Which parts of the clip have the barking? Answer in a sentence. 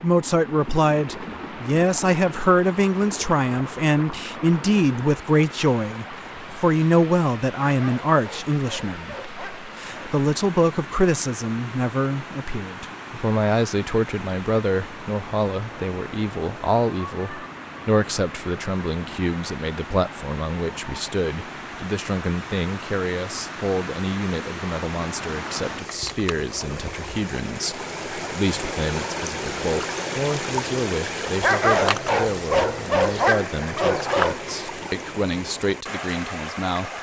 The barking can be heard from 7.7 to 10.2 s and from 31.4 to 34.4 s.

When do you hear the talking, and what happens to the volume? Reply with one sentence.
You can hear the talking from 0.0 to 36.9 s, getting quieter.